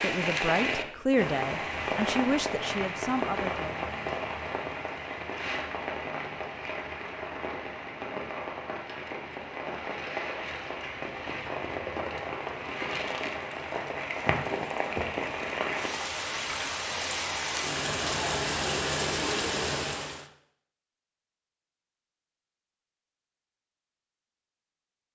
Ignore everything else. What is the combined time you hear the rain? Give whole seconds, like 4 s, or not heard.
20 s.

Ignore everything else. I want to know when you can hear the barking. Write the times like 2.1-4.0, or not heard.
not heard.